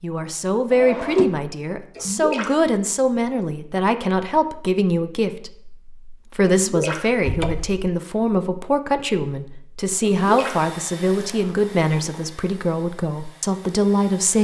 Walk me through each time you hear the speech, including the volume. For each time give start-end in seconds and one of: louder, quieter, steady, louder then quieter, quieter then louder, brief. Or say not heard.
0.0-14.3 steady.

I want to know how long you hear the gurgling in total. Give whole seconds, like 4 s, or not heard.
2 s.